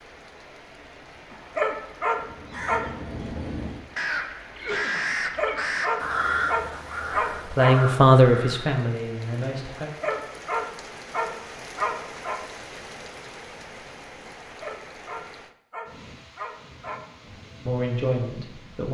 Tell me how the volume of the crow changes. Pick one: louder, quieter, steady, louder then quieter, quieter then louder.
louder then quieter.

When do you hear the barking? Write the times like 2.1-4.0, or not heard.
1.3-3.0, 5.1-7.8, 9.8-12.4, 14.6-17.0.